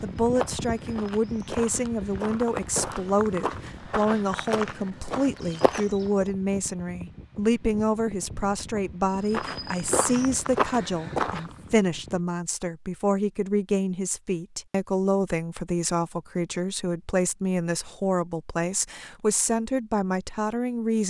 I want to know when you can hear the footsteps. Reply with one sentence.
You can hear the footsteps from 0.0 to 6.2 s and from 9.2 to 11.6 s.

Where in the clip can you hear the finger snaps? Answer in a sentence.
You can't hear the finger snaps here.